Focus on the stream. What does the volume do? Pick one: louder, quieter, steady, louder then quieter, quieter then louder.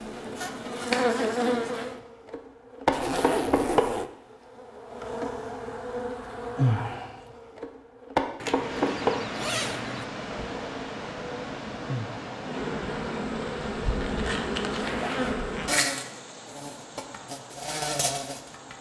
quieter.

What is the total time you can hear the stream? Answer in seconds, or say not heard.
10 s.